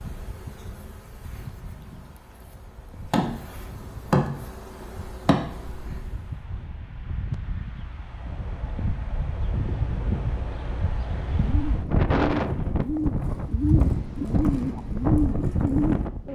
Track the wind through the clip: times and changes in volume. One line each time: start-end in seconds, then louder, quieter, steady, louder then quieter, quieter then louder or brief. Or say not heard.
0.0-16.3 louder.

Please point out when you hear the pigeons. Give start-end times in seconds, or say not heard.
11.2-16.3.